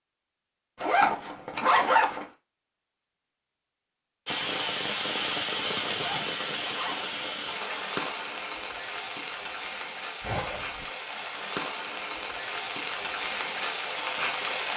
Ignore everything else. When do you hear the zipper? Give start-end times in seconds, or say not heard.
0.8-2.2, 5.9-7.1, 10.2-10.8.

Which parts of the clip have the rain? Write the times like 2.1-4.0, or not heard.
4.2-14.7.